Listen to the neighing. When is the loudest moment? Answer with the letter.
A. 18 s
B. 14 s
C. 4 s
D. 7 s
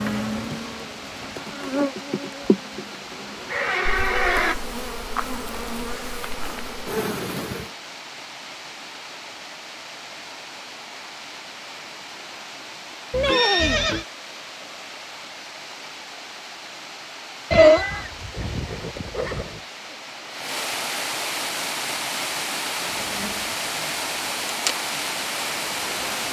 A.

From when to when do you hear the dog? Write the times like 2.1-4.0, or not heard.
not heard.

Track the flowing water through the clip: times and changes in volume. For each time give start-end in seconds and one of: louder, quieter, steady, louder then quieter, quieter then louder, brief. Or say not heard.
0.0-26.2 louder.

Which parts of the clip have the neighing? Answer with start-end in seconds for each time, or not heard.
3.5-4.5, 13.1-14.1, 17.5-19.5.